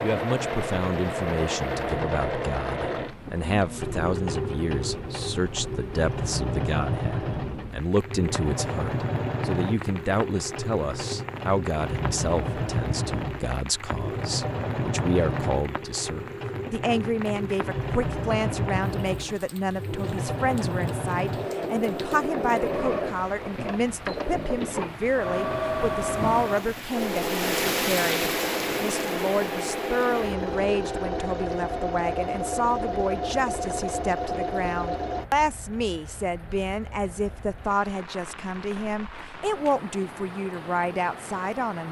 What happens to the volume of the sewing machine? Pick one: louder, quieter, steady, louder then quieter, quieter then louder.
steady.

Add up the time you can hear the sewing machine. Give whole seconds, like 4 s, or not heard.
35 s.